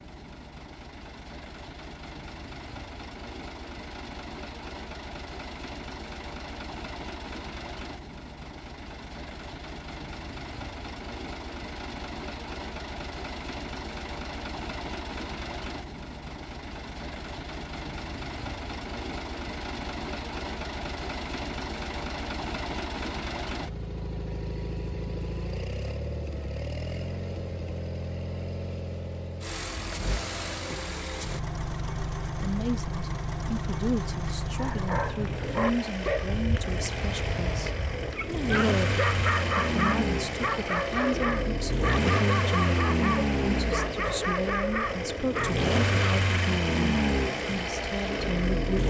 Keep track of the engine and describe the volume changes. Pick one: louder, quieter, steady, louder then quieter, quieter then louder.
louder.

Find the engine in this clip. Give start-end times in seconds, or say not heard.
0.0-48.8.